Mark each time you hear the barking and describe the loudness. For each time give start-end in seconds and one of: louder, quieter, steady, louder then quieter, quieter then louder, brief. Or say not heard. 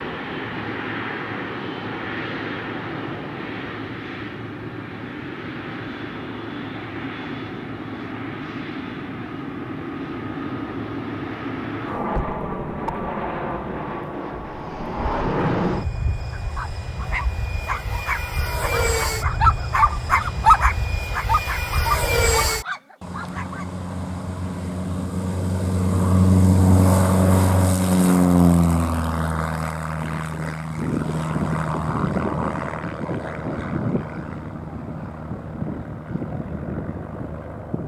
16.3-23.6 louder then quieter.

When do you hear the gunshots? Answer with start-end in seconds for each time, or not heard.
not heard.